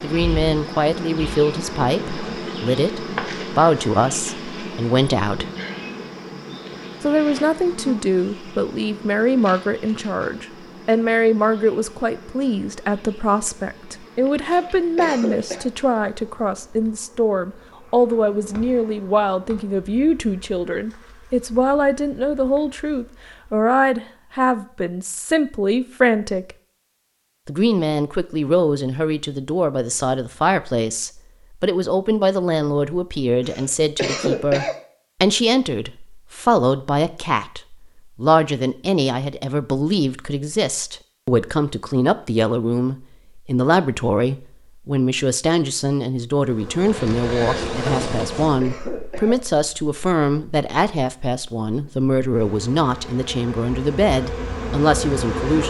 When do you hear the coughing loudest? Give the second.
34 s.